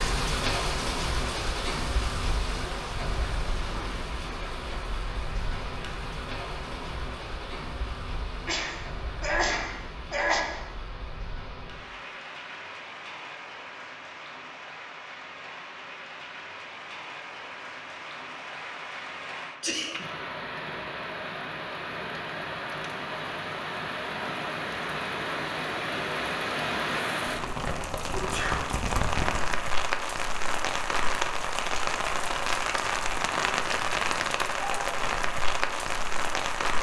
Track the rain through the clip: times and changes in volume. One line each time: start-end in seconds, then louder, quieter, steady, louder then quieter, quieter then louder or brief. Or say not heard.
0.0-36.7 quieter then louder.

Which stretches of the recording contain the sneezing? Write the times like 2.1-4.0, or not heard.
8.4-10.4, 19.6-20.1, 28.1-28.6.